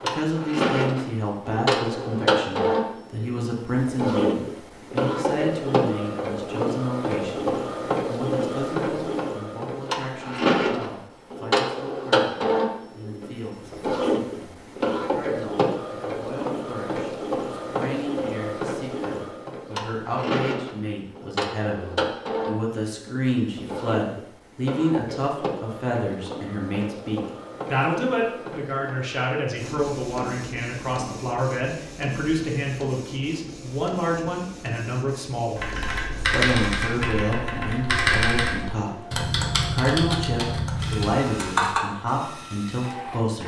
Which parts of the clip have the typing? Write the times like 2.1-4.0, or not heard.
35.5-41.8.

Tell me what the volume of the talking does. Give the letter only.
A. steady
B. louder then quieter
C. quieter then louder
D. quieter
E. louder
C.